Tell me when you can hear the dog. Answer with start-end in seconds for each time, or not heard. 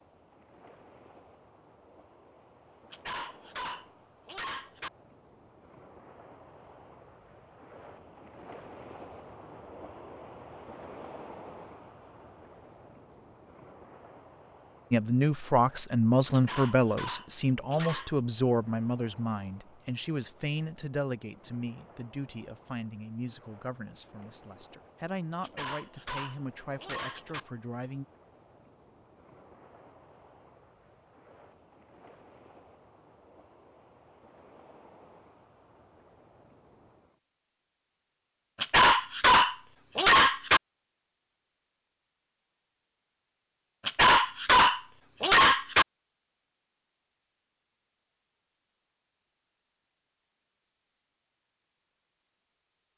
2.9-4.9, 16.3-18.1, 25.4-27.4, 38.6-40.6, 43.9-45.9.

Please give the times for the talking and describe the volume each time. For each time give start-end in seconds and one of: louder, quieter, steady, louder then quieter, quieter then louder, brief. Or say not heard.
14.9-28.1 quieter.